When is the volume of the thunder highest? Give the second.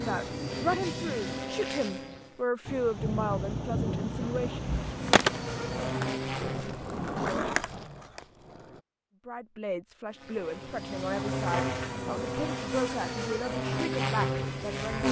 4 s.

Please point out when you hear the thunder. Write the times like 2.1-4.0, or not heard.
2.6-6.0.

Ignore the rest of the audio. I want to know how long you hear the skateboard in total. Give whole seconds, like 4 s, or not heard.
4 s.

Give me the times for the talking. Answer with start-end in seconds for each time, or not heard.
0.0-4.7, 9.2-15.0.